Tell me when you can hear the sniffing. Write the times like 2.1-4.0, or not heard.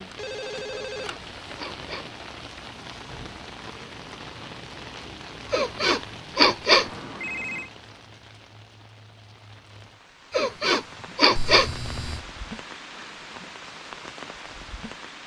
0.7-2.1, 5.5-6.9, 10.3-11.7.